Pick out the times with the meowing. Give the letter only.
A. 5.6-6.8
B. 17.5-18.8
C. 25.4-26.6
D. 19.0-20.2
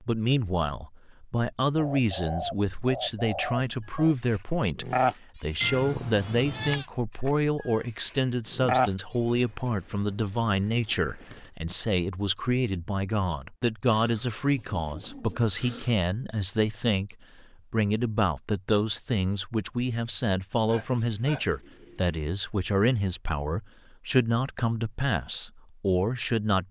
A.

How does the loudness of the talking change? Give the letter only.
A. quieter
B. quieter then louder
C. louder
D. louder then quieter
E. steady
E.